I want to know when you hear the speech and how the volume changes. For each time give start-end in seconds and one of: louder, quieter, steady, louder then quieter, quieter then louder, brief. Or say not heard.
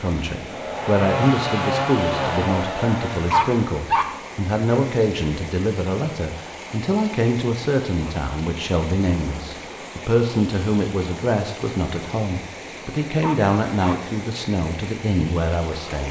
0.0-16.0 steady.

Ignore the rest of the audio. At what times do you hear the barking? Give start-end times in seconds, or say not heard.
3.3-4.0, 13.2-14.0.